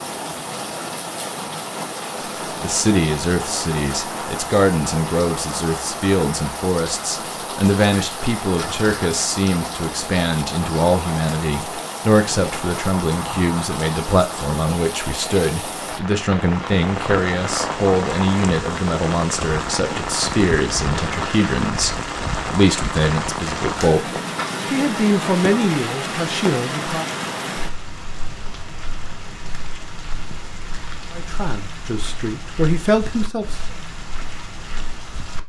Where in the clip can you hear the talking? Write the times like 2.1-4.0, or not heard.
2.6-27.1, 31.1-33.6.